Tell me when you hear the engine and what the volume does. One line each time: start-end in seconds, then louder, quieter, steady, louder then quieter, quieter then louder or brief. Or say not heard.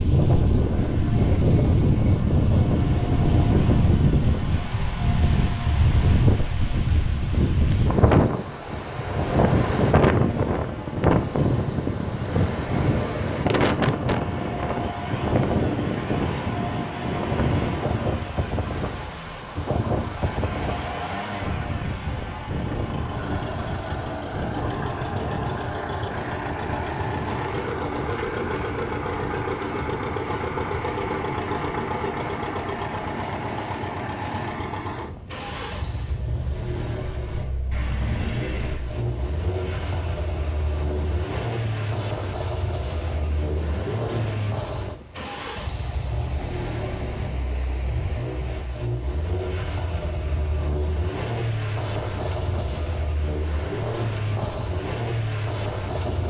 0.0-56.2 louder.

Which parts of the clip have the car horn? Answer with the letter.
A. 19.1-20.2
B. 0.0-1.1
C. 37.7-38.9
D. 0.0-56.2
C.